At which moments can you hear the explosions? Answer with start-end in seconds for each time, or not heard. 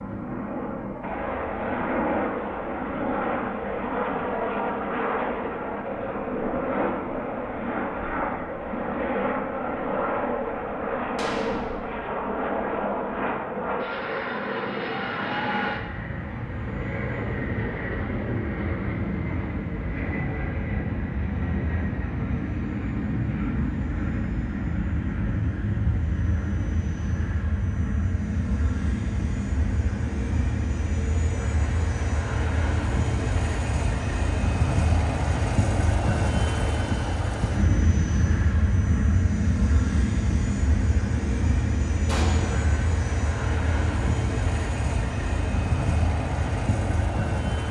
11.2-11.8, 42.0-42.8.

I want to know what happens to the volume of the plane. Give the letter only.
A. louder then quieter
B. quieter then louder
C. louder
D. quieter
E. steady
E.